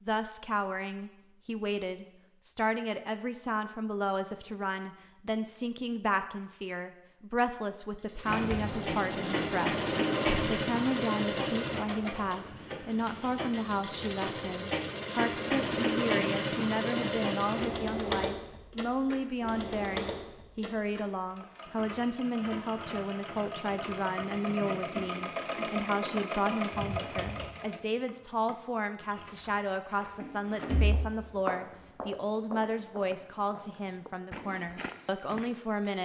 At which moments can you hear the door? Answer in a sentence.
You can hear the door from 8.2 to 10.5 s and from 30.2 to 31.0 s.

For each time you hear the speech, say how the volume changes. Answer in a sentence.
You can hear the speech from 0.0 to 36.0 s, at a steady volume.